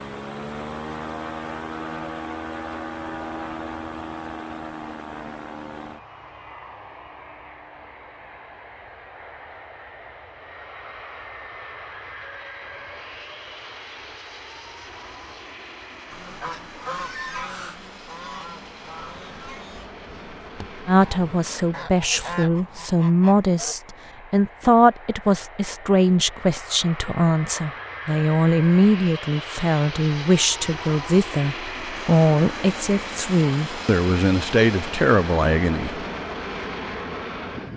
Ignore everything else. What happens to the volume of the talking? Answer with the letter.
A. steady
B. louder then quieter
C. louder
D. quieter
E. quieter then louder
A.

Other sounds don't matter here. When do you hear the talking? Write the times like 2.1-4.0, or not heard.
20.9-36.0.